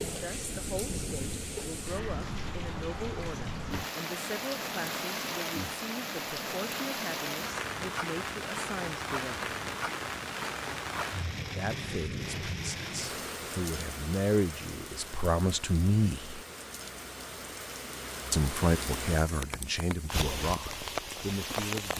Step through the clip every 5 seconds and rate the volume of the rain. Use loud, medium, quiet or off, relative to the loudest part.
loud, loud, loud, medium, loud.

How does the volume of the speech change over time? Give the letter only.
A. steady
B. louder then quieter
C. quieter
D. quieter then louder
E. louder
E.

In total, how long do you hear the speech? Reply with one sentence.
You can hear the speech for 18 seconds altogether.